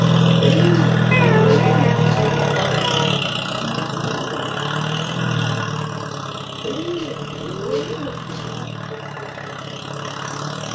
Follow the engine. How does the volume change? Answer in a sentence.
The volume of the engine goes down.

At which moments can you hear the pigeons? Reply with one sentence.
The pigeons can be heard from 0.4 to 2.4 s and from 6.6 to 8.7 s.